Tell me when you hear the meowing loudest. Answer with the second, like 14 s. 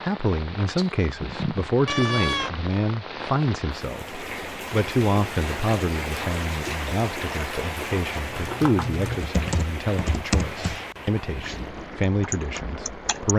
2 s.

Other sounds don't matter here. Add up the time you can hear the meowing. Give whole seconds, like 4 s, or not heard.
2 s.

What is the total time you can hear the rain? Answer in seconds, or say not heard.
13 s.